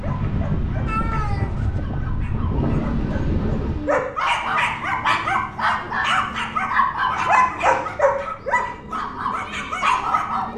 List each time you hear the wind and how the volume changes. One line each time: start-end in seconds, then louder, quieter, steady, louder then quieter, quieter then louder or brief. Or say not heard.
0.0-10.5 quieter.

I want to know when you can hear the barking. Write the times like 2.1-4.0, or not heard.
0.0-10.5.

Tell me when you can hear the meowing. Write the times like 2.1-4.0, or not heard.
0.8-1.8.